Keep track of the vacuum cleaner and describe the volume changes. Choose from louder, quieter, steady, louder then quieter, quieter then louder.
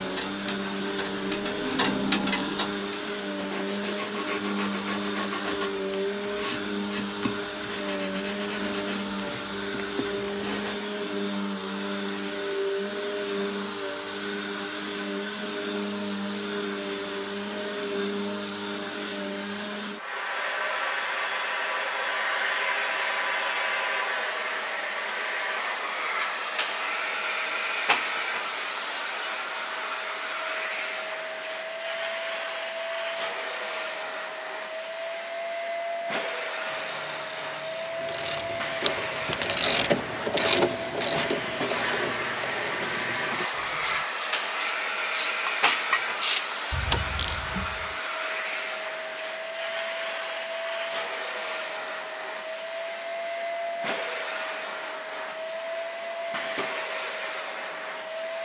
steady.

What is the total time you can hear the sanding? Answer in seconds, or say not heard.
15 s.